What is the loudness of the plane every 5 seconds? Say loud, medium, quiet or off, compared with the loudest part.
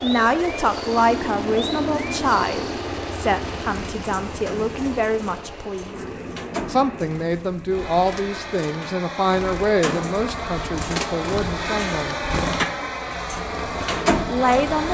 loud, medium, loud.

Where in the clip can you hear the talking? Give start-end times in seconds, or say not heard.
0.0-6.0, 6.7-12.2, 14.3-14.9.